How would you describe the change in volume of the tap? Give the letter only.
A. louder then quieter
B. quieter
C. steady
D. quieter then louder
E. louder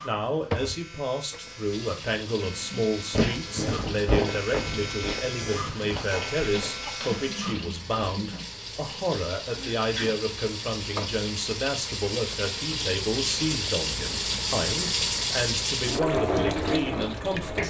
E.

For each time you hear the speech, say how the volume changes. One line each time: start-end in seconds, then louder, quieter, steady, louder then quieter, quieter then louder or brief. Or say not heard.
0.0-17.6 steady.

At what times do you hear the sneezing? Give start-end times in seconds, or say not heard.
5.8-7.1, 9.4-10.2.